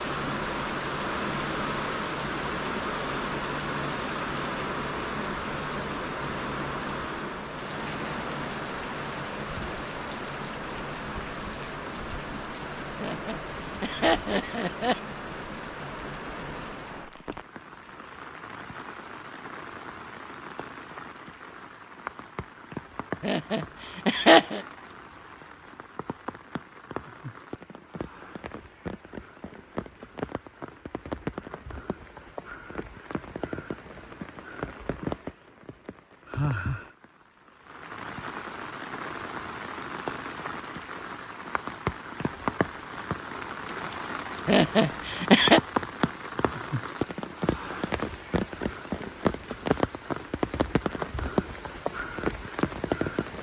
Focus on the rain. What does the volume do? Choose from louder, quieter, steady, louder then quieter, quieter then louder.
quieter then louder.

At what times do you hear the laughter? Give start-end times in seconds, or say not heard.
13.0-15.0, 23.2-24.6, 44.5-45.6.